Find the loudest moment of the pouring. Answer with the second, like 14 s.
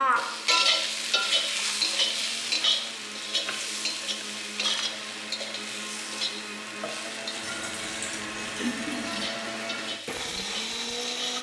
9 s.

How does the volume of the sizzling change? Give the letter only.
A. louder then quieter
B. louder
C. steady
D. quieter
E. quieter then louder
D.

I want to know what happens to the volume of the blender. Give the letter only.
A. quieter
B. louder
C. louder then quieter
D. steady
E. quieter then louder
B.